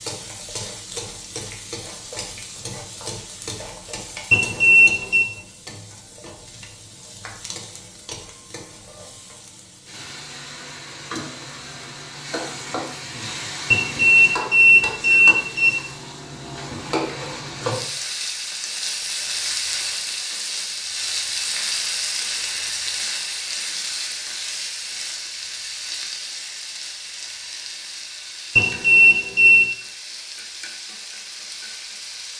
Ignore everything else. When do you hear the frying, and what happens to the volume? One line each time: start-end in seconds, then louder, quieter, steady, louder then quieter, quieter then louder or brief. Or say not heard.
0.0-32.3 louder then quieter.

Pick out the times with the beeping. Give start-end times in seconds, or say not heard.
4.3-5.2, 13.7-15.7, 28.6-29.6.